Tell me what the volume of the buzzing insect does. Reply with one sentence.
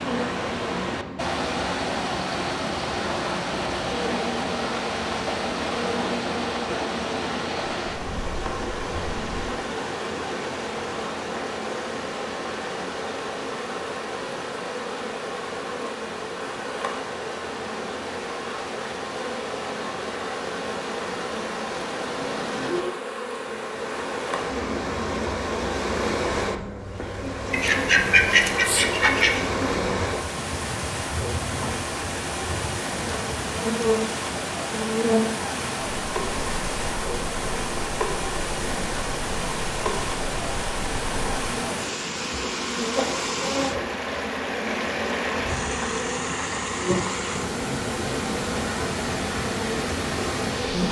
The volume of the buzzing insect stays about the same.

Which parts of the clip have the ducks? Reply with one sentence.
You can hear the ducks from 27.5 to 29.4 s.